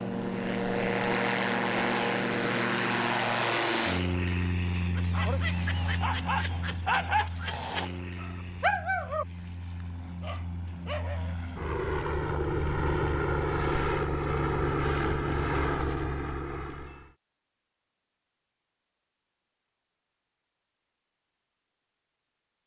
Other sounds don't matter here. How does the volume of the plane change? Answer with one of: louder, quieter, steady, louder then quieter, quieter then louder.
quieter then louder.